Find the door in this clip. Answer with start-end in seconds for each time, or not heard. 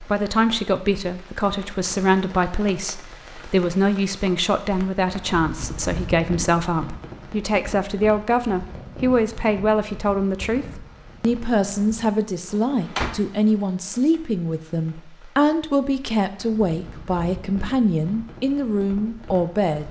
12.4-13.2.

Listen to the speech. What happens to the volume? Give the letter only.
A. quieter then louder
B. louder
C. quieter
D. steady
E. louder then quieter
D.